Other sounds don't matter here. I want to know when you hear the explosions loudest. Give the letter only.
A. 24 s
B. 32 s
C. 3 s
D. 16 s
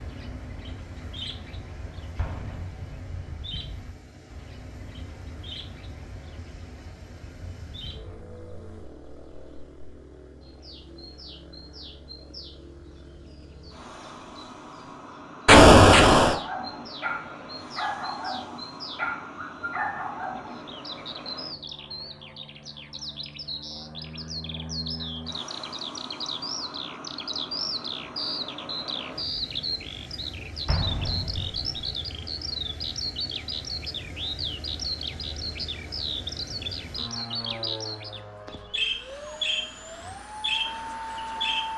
D.